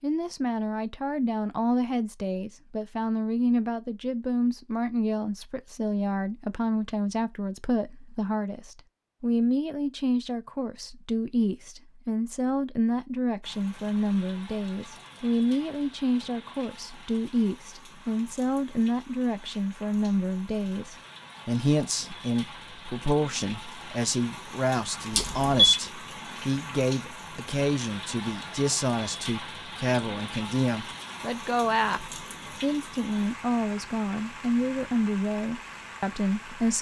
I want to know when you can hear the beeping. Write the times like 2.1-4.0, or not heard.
25.1-25.8.